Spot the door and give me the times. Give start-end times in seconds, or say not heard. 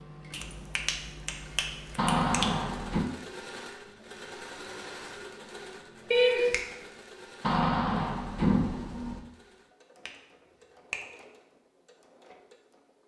1.9-3.0, 7.4-9.2.